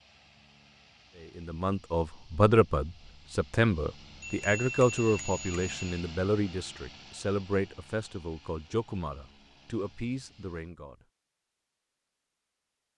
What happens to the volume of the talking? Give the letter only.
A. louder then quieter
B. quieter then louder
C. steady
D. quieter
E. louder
D.